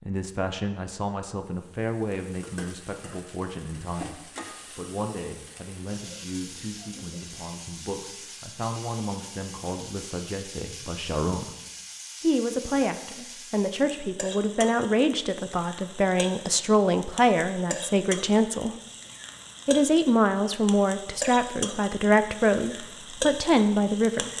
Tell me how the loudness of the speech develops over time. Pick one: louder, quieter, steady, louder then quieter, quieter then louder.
louder.